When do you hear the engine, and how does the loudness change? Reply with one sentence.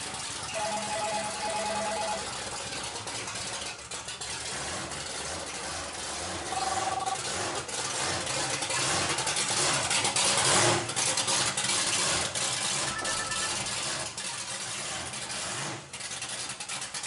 You can hear the engine from 0.0 to 17.0 s, getting louder then quieter.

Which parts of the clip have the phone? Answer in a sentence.
You can hear the phone from 0.6 to 2.2 s, from 6.5 to 7.6 s and from 12.8 to 13.6 s.